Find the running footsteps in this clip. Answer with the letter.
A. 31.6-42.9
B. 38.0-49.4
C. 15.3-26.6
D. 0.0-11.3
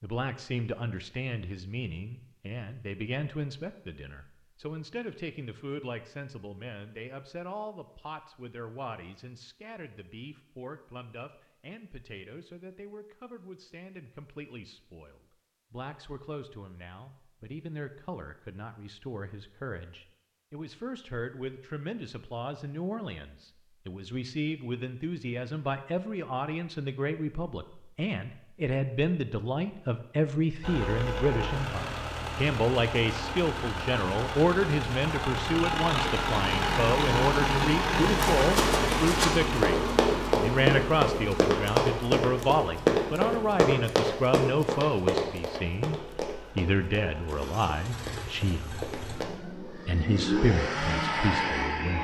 B.